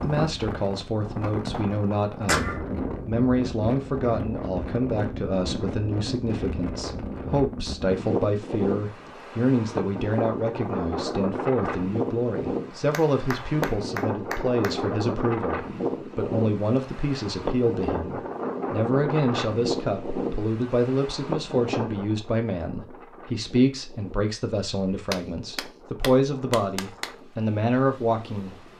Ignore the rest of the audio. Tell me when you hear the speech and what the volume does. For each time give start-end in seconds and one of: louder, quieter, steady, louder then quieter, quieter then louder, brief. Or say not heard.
0.0-28.6 steady.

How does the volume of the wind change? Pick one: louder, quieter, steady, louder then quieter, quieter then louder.
quieter.